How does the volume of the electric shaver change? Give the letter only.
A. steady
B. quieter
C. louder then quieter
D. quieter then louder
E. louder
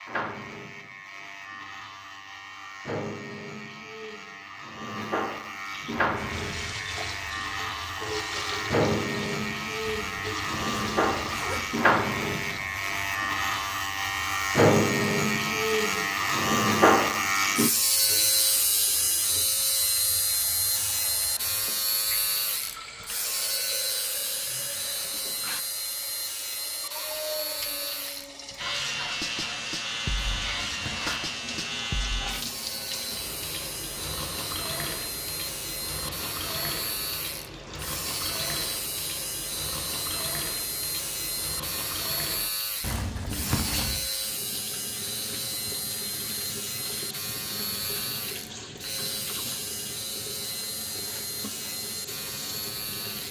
C.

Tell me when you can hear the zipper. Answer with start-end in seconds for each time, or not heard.
9.8-11.8, 30.1-31.2, 42.8-44.0.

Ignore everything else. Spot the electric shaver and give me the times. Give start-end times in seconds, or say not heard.
0.0-53.2.